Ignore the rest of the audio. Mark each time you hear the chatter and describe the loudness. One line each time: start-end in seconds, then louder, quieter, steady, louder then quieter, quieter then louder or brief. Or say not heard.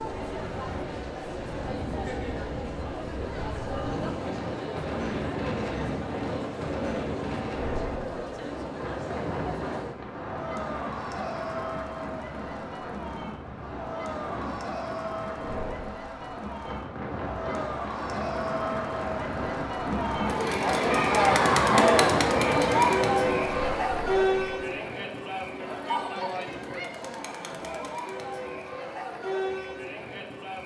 0.0-30.6 louder then quieter.